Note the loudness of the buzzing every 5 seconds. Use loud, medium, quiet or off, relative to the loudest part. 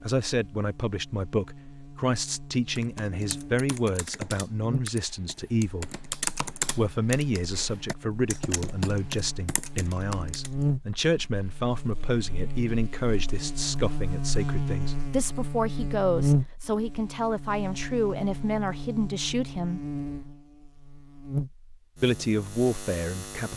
medium, quiet, loud, loud, medium.